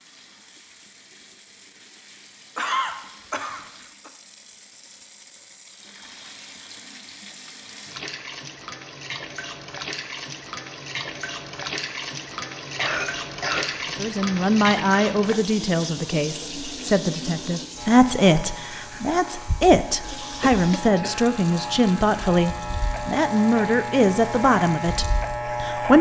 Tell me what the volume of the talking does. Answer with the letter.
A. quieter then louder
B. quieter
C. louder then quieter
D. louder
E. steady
E.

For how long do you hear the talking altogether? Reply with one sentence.
You can hear the talking for 12 seconds altogether.